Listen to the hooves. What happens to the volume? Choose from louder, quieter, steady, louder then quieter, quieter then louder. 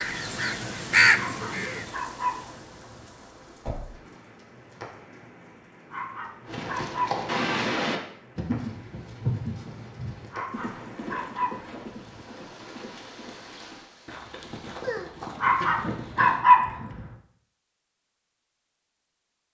quieter then louder.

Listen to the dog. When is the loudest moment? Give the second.
16 s.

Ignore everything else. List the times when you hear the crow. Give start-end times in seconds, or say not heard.
0.0-1.9.